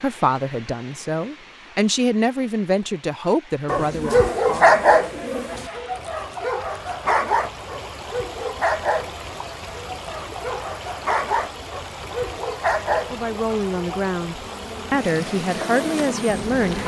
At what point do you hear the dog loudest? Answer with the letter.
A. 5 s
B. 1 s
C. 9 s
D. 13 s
A.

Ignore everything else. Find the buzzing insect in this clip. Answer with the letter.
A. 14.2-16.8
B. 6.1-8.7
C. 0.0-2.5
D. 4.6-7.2
A.